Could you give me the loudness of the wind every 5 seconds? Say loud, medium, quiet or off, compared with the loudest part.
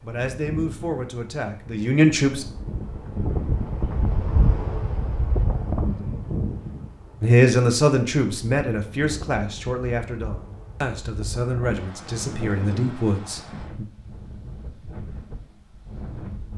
loud, loud, medium, medium.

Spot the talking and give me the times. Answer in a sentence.
The talking can be heard from 0.0 to 2.5 s and from 7.2 to 13.8 s.